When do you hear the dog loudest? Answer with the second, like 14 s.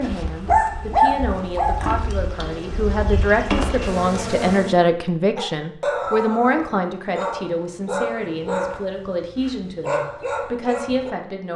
1 s.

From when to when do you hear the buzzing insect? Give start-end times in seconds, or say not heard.
0.0-4.8.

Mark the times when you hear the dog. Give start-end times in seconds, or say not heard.
0.0-1.8, 5.3-11.2.